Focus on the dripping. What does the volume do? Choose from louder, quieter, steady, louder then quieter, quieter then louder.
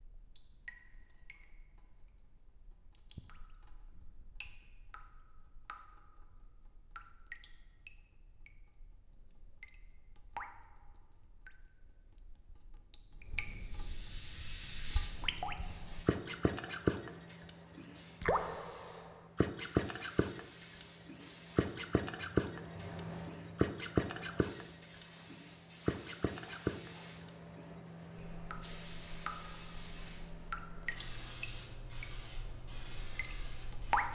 louder then quieter.